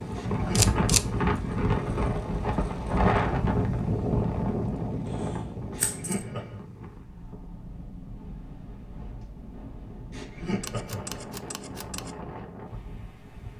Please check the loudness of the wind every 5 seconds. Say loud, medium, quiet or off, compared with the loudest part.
loud, quiet, quiet.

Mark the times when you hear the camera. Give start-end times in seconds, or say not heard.
0.6-1.1, 5.0-6.2, 10.6-12.2.